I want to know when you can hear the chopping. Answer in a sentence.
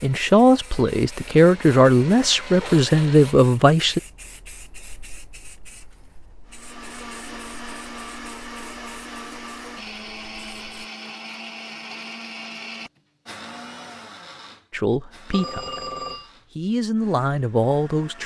The chopping can't be heard in this clip.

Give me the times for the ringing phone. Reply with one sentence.
The ringing phone can be heard from 15.3 to 16.3 s.